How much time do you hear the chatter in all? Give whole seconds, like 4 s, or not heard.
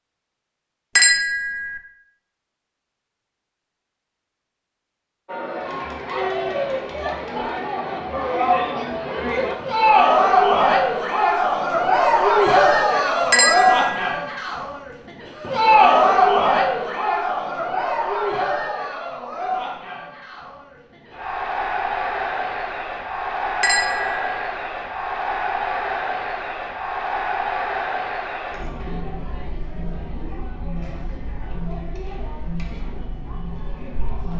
29 s.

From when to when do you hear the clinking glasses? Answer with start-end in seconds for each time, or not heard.
0.9-1.8, 13.3-14.2, 23.6-24.4.